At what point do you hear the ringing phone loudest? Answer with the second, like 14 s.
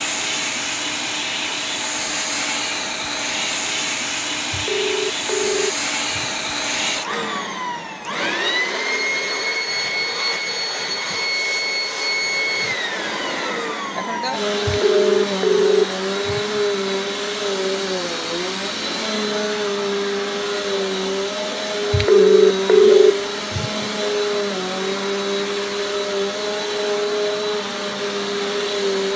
23 s.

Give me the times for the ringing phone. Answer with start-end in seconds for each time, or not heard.
4.5-6.4, 14.7-16.6, 21.9-23.8.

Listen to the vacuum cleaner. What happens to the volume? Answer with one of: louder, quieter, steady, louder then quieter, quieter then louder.
steady.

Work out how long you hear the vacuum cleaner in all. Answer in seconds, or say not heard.
29 s.